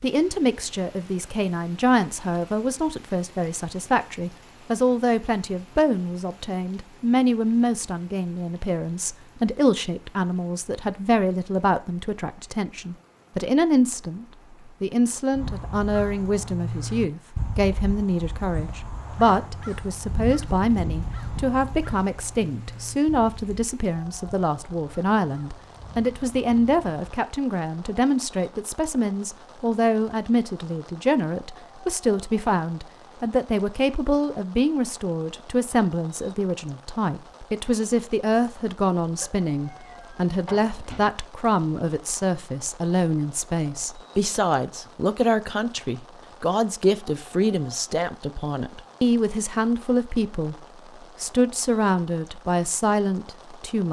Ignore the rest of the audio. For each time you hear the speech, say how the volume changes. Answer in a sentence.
The speech can be heard from 0.0 to 50.5 s, at a steady volume; and briefly from 51.2 to 53.8 s.